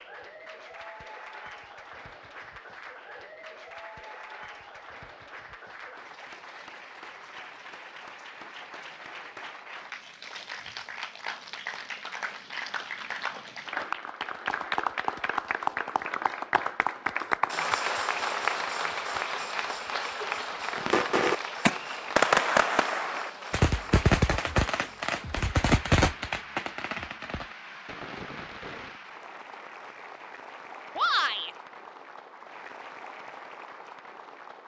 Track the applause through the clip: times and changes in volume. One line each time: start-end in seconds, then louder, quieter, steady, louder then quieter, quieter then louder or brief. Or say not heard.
0.0-34.6 louder then quieter.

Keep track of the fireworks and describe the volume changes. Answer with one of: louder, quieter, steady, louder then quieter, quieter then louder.
quieter.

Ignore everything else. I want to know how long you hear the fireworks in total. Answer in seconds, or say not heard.
8 s.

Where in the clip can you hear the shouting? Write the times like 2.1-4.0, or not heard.
30.9-31.5.